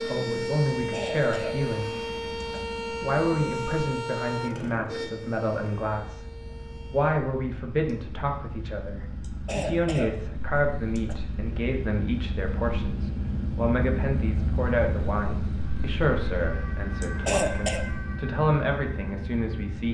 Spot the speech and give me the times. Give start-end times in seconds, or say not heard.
0.0-2.0, 3.0-6.2, 6.9-19.8.